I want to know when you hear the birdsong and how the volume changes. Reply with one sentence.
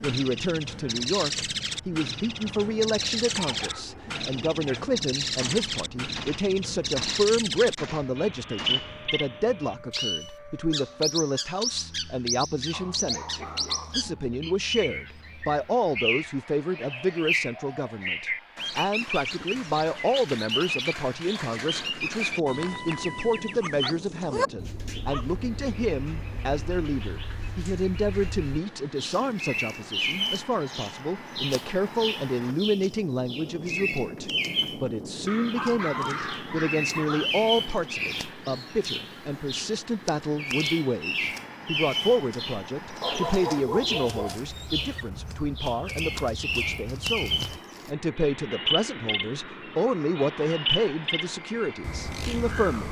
You can hear the birdsong from 0.0 to 52.8 s, at a steady volume.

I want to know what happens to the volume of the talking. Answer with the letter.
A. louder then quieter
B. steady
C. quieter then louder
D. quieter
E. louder
B.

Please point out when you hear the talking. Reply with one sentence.
You can hear the talking from 0.0 to 52.8 s.